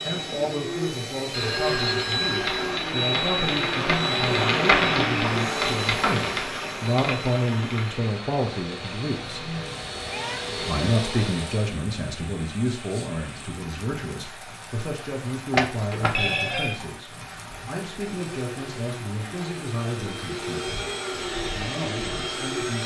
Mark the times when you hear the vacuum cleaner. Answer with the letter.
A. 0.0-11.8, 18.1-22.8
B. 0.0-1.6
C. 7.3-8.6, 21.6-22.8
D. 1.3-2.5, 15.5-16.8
A.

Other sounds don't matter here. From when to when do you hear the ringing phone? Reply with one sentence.
The ringing phone can be heard from 1.3 to 2.5 s and from 15.5 to 16.8 s.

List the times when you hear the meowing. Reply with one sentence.
You can hear the meowing from 9.1 to 10.7 s.